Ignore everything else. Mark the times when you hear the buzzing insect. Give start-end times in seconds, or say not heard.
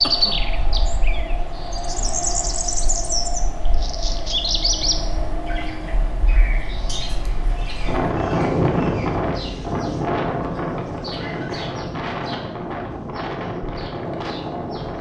not heard.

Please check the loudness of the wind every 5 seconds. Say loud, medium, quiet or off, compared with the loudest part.
medium, loud, loud.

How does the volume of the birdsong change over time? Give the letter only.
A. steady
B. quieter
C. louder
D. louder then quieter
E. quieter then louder
B.